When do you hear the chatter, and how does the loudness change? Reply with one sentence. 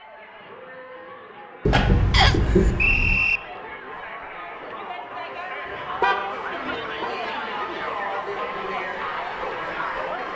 You can hear the chatter from 0.0 to 10.3 s, getting louder.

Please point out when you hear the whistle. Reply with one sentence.
The whistle can be heard from 2.1 to 3.4 s.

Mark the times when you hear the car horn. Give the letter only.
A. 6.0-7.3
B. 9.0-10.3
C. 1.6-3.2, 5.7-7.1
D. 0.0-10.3
C.